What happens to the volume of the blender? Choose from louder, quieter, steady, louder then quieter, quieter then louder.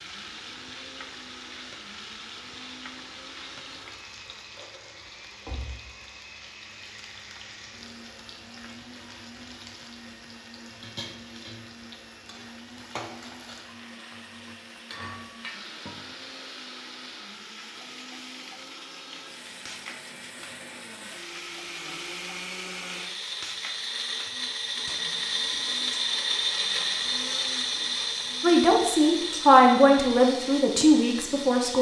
louder.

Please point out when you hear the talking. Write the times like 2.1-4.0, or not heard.
28.4-31.7.